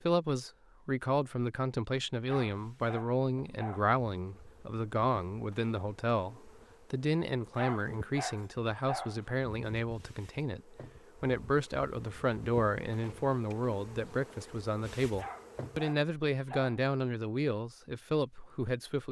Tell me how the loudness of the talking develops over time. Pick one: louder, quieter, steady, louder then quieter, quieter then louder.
steady.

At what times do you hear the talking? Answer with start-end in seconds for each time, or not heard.
0.1-19.0.